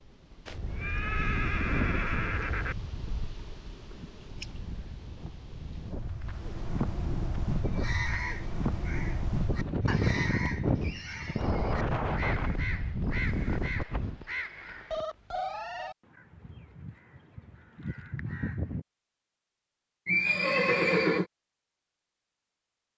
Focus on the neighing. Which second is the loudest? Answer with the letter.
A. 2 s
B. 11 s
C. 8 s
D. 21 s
D.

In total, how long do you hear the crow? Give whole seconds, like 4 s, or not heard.
11 s.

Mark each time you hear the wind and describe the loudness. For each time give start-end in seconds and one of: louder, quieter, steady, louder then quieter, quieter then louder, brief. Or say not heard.
0.0-14.2 quieter then louder.